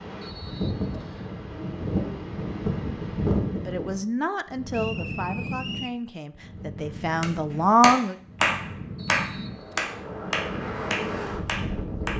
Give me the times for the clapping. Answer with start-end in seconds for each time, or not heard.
7.2-12.1.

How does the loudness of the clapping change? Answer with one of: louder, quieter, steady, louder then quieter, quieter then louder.
quieter.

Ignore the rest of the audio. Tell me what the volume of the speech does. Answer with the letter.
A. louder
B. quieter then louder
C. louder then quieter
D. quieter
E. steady
B.